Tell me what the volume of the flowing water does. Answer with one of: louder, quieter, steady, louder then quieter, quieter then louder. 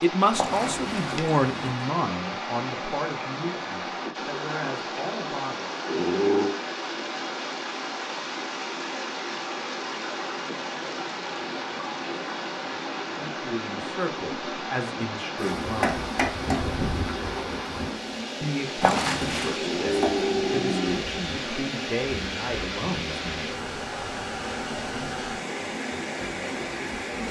steady.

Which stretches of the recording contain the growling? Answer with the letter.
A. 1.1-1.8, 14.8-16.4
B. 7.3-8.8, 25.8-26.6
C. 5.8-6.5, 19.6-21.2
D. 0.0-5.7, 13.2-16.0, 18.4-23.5
C.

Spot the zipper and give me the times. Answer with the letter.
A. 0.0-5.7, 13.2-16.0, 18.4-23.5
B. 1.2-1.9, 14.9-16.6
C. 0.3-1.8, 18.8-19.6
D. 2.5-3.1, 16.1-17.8
C.